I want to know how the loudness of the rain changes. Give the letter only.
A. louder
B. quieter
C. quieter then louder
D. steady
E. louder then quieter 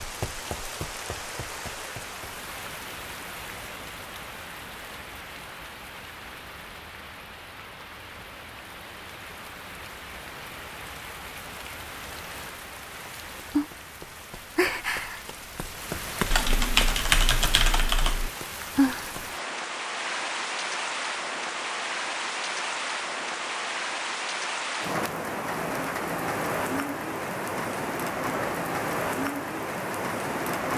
A.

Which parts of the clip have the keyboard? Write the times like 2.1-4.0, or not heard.
16.3-18.3.